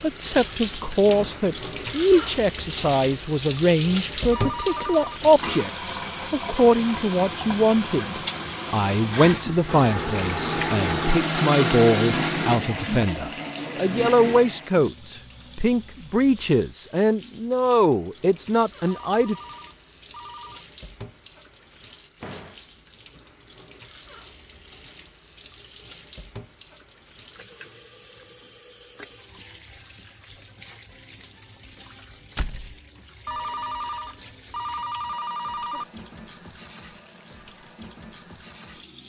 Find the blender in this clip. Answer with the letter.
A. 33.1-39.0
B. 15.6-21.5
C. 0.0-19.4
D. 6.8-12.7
D.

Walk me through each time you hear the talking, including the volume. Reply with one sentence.
You can hear the talking from 0.0 to 19.4 s, at a steady volume.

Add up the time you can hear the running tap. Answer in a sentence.
The running tap can be heard for 39 seconds in total.